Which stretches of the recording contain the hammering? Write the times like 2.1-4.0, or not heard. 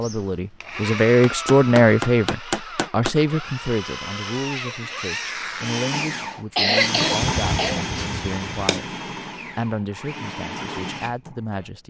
1.2-3.1, 7.2-8.8.